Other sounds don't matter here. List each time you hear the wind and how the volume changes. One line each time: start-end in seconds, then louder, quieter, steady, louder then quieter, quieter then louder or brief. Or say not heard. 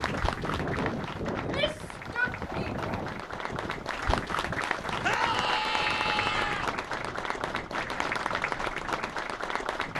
0.0-9.9 quieter.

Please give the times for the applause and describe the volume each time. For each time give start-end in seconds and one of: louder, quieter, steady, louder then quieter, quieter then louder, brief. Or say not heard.
0.0-9.9 louder.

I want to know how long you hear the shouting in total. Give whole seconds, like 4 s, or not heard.
3 s.